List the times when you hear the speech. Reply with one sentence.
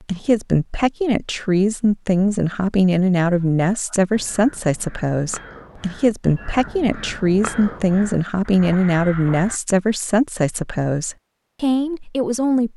You can hear the speech from 0.1 to 12.7 s.